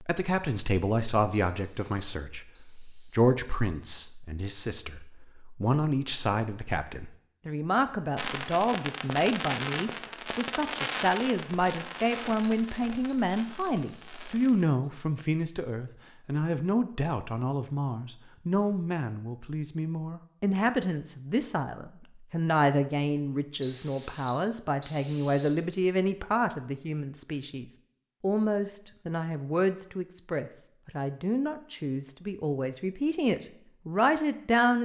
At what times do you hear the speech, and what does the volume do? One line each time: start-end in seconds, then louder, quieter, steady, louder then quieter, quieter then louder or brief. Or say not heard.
0.0-34.7 steady.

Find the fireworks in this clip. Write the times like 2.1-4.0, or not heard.
8.2-14.7.